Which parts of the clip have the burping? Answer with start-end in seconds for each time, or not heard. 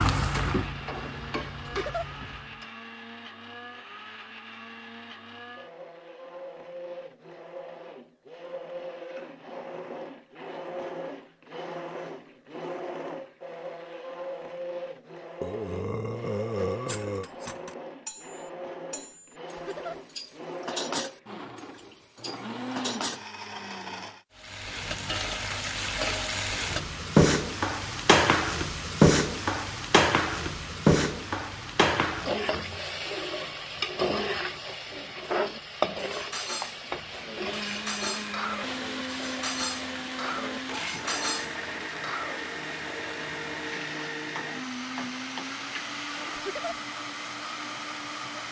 15.4-17.3.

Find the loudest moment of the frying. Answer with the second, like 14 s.
29 s.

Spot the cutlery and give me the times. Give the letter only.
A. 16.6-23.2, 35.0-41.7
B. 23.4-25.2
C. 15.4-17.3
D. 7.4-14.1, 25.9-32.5
A.